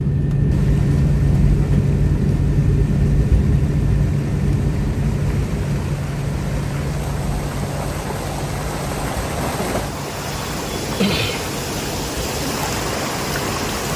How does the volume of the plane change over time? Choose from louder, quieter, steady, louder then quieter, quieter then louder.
quieter.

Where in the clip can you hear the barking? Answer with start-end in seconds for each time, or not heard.
not heard.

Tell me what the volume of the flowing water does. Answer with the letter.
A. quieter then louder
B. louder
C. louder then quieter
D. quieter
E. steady
B.